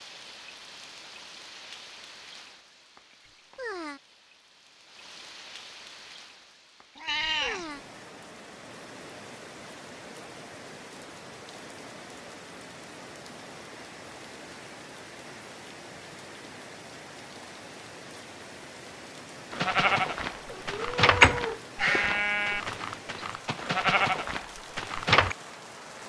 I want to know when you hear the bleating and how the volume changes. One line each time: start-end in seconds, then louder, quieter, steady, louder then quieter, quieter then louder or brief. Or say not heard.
19.5-25.4 louder then quieter.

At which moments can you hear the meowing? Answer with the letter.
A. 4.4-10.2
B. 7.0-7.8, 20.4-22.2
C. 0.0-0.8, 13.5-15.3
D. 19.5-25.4
B.